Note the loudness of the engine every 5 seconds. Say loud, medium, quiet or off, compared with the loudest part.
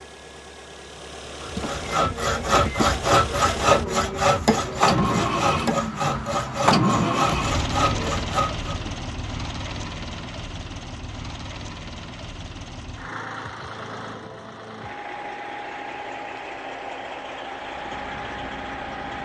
medium, loud, medium, medium.